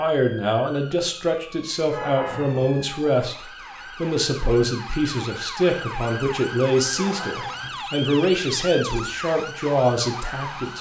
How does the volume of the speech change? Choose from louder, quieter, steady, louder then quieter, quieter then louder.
steady.